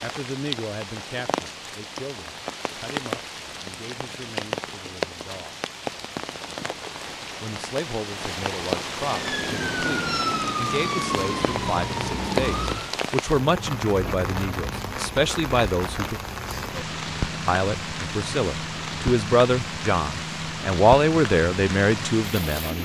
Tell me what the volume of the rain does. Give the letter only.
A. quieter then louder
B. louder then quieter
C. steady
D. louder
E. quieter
C.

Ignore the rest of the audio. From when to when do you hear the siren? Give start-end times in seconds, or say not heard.
9.0-12.9.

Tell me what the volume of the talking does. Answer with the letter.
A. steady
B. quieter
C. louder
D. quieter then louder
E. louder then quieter
C.